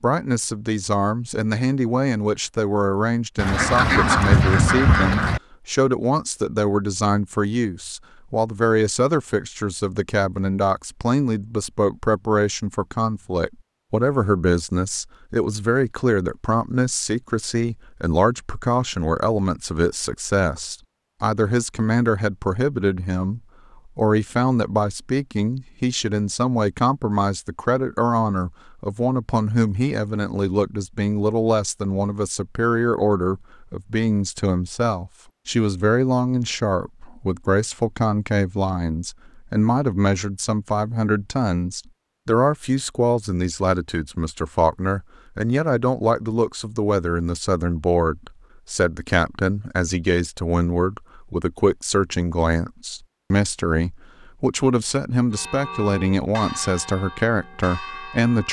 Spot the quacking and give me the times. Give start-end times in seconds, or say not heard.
3.4-5.4.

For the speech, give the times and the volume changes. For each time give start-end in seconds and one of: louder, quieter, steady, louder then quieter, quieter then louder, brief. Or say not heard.
0.0-58.4 steady.